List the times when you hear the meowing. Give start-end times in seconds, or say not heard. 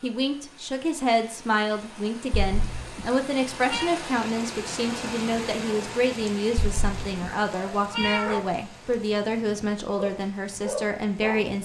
2.3-3.9, 6.5-8.4.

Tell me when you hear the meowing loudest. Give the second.
8 s.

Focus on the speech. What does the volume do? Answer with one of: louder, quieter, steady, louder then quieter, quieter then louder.
steady.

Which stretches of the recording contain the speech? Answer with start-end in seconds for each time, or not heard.
0.0-11.6.